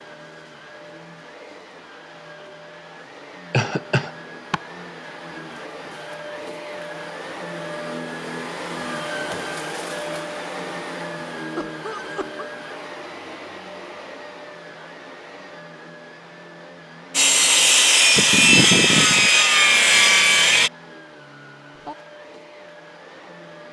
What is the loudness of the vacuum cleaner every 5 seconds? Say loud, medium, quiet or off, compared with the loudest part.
medium, loud, loud, medium, medium.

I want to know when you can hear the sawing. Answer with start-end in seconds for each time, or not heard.
17.1-20.7.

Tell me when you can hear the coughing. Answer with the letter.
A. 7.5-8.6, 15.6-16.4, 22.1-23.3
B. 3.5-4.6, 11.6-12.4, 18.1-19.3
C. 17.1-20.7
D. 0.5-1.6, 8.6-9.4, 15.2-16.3
B.